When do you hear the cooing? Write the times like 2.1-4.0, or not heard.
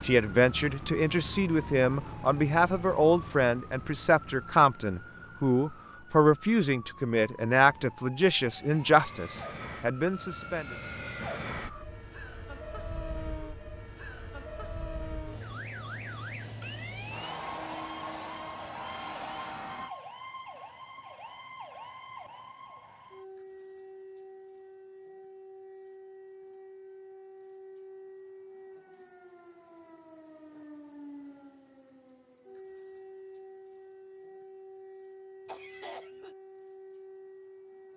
not heard.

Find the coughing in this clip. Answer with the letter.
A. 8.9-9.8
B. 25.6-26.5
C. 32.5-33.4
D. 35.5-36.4
D.